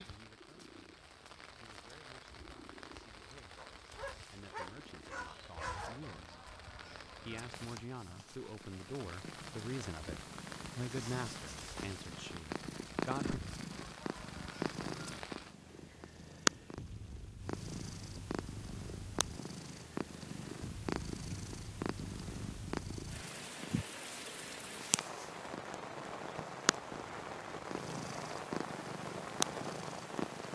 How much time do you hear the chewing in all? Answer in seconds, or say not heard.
not heard.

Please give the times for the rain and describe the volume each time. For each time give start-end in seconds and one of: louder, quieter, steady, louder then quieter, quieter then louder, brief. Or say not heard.
0.0-30.5 louder.